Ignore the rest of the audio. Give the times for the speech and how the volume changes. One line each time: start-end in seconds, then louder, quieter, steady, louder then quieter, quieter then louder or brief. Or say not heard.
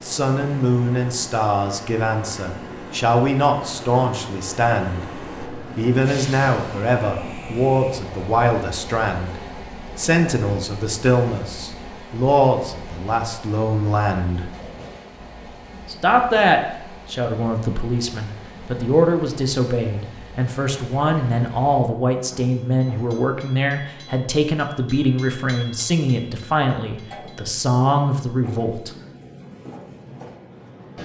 0.0-14.5 steady
15.8-28.9 steady.